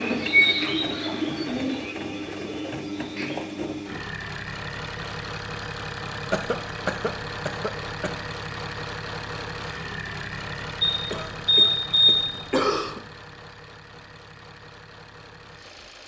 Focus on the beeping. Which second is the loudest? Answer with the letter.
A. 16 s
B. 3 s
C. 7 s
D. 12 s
D.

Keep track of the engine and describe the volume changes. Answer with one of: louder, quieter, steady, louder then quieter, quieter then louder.
quieter.